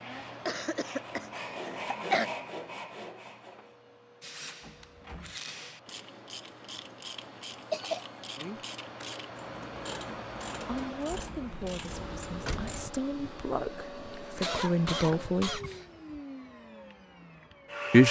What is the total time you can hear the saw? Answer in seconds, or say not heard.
4 s.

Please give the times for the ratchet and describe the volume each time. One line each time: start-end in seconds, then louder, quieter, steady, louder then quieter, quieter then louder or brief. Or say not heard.
4.2-12.9 steady.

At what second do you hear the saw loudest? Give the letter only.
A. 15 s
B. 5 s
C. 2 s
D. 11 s
C.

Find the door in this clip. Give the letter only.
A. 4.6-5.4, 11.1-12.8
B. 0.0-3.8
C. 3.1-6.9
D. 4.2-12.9
A.